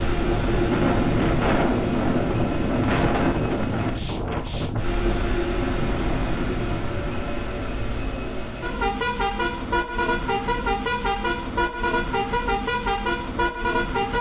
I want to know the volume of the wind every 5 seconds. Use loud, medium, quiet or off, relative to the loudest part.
loud, medium, off.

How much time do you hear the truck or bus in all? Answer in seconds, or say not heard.
14 s.